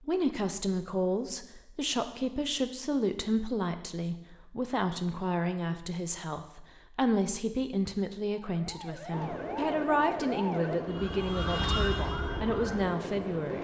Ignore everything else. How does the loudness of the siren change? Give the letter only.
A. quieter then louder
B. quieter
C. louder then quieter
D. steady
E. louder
C.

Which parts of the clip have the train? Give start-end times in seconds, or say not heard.
9.1-13.5.